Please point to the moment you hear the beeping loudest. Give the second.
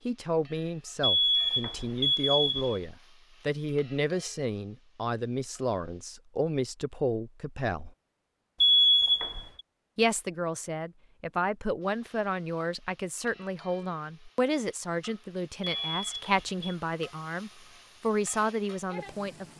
9 s.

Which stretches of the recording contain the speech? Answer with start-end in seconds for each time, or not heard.
0.1-8.0, 9.9-19.5.